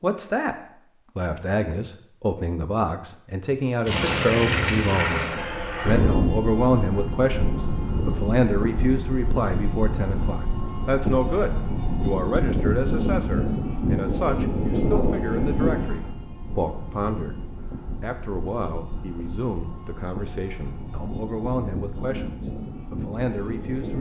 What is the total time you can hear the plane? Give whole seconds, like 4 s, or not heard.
20 s.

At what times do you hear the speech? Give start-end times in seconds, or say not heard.
0.0-0.6, 1.1-17.4, 18.0-23.9.